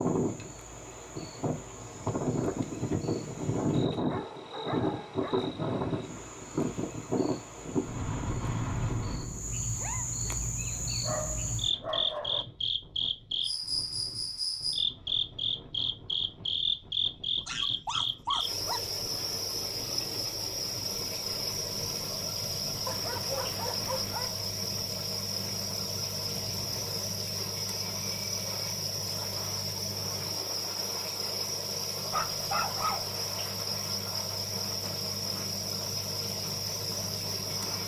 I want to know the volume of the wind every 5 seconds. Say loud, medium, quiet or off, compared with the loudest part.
loud, loud, quiet, quiet, quiet, quiet, quiet, quiet.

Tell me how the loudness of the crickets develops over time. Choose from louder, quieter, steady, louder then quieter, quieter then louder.
louder.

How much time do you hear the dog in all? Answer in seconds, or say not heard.
8 s.